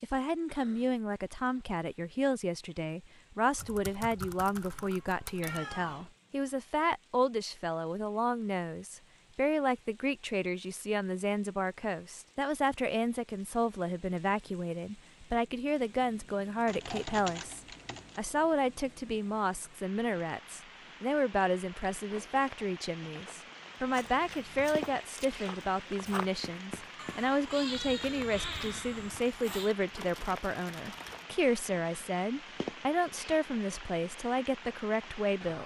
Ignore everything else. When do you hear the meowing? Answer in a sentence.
You can hear the meowing from 5.4 to 6.1 s and from 26.9 to 29.7 s.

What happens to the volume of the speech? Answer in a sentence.
The loudness of the speech stays about the same.